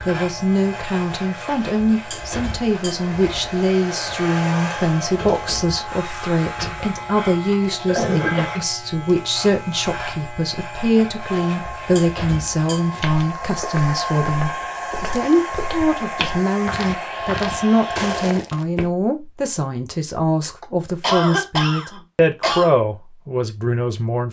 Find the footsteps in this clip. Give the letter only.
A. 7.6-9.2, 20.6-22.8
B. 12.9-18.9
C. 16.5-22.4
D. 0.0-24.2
B.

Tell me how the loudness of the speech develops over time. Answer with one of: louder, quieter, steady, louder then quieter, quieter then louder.
steady.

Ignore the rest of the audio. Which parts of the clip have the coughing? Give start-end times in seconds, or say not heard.
7.6-9.2, 20.6-22.8.